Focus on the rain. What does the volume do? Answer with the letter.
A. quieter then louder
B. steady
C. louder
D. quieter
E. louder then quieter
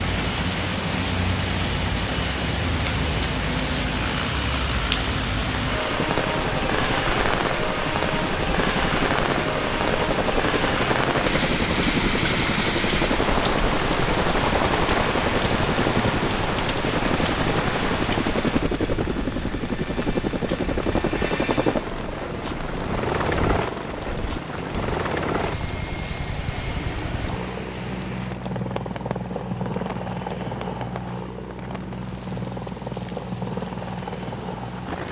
D.